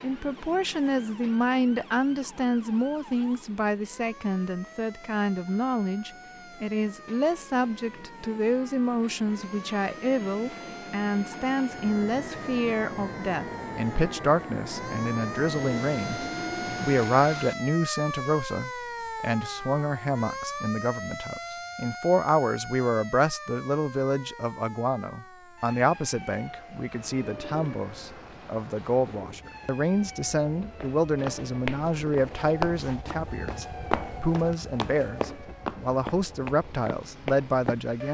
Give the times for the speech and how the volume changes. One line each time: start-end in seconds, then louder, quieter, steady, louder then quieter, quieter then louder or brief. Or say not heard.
0.0-38.0 steady.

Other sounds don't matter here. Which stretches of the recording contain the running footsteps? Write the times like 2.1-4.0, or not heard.
30.8-37.8.